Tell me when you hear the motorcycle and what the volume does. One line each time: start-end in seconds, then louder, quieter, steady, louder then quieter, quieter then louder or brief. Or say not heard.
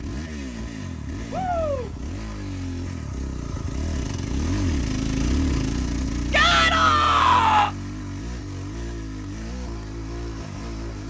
0.0-11.0 louder then quieter.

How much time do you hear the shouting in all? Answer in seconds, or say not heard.
2 s.